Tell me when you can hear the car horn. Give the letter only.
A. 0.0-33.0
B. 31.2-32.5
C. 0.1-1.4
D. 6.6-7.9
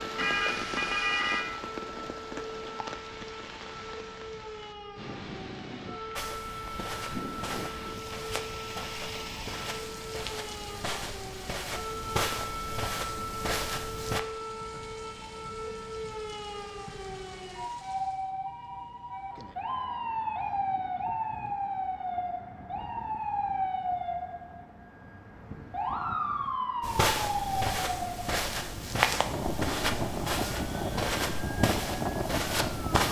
C.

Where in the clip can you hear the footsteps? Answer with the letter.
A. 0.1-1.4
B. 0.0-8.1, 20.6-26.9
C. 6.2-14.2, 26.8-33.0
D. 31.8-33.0
C.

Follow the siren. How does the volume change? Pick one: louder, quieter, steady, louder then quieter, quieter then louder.
louder.